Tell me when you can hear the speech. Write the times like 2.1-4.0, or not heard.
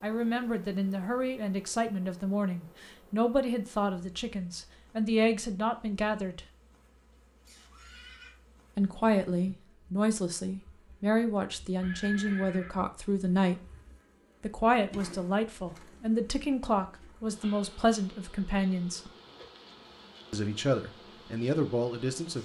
0.0-6.4, 8.8-13.6, 14.4-19.1, 20.3-22.3.